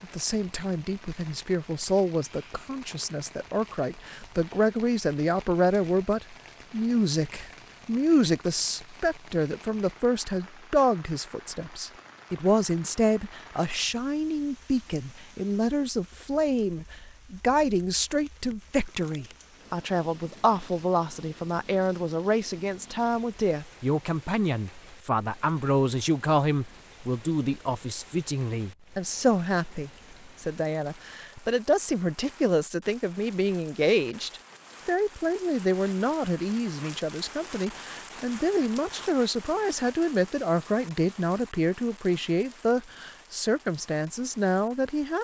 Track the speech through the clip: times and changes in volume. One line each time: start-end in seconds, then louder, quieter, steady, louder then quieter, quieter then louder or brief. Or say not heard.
0.0-45.1 steady.